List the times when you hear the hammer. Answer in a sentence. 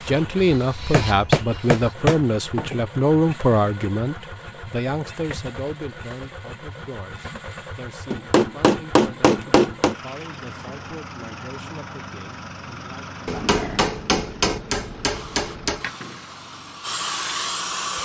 You can hear the hammer from 0.9 to 2.9 s, from 8.1 to 9.9 s and from 13.2 to 15.8 s.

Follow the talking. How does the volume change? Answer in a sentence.
The loudness of the talking goes down.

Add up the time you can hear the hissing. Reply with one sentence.
You can hear the hissing for 5 seconds altogether.